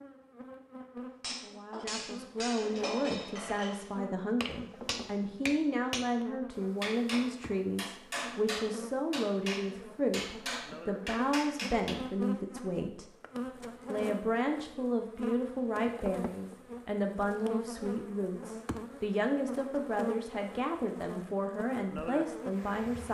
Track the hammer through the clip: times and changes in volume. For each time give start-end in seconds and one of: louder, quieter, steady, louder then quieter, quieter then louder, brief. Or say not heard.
1.2-12.1 steady.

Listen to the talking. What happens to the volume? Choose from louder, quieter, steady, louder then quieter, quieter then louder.
steady.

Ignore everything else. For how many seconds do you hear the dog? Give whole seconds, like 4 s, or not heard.
not heard.